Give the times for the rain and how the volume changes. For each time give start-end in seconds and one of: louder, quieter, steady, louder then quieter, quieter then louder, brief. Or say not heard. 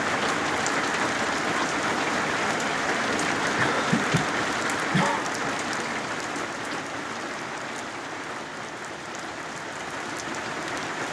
0.0-11.0 quieter.